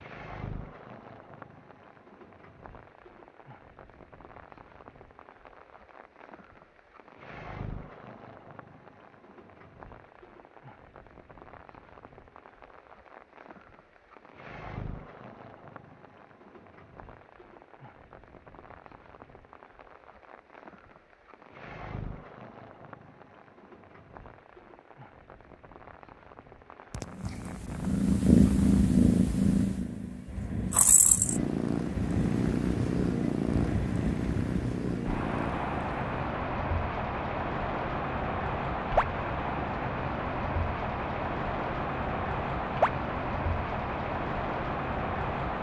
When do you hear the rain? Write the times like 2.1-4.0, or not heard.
0.0-45.5.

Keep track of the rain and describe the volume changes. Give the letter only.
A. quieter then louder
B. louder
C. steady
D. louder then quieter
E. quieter
B.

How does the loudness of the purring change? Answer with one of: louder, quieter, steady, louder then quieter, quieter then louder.
quieter.